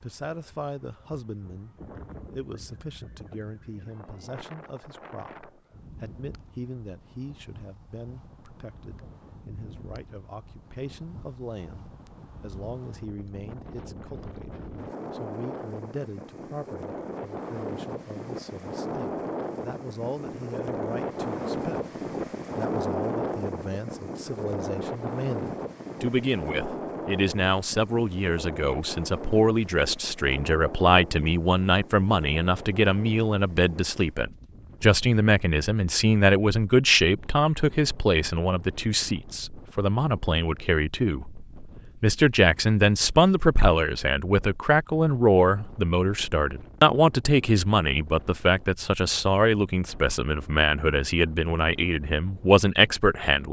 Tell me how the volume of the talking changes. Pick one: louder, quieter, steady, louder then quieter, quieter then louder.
louder.